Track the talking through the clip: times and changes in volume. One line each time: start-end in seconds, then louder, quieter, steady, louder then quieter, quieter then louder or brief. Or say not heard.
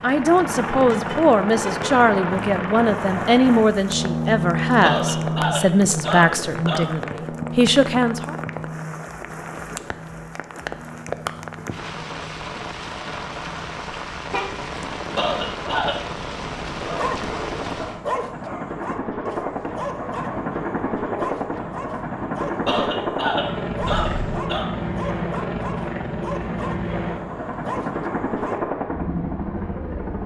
0.0-8.3 steady.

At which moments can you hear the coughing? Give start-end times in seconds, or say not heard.
4.8-6.9, 15.2-15.9, 22.6-24.7.